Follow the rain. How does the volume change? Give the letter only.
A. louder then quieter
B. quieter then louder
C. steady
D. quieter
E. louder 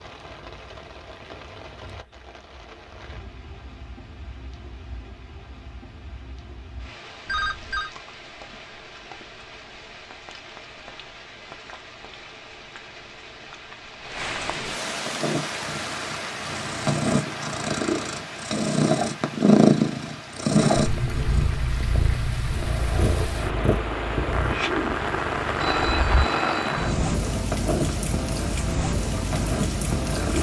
E.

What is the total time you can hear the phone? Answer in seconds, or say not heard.
2 s.